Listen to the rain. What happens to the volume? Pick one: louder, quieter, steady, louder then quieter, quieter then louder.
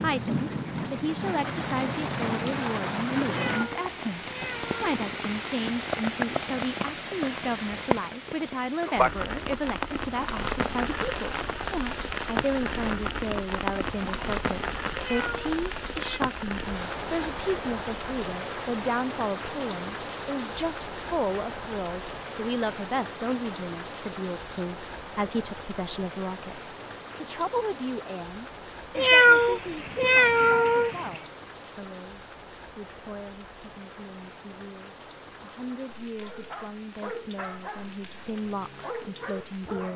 quieter.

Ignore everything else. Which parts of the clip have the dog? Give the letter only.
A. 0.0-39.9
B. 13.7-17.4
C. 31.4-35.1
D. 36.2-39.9
D.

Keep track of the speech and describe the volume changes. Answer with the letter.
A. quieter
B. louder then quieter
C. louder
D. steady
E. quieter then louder
A.